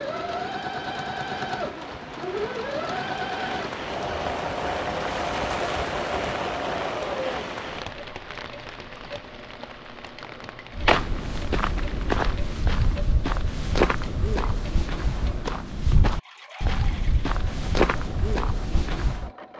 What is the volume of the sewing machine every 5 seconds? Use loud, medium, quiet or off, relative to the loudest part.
loud, loud, quiet, quiet.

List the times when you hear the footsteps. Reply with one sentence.
The footsteps can be heard from 10.7 to 19.3 s.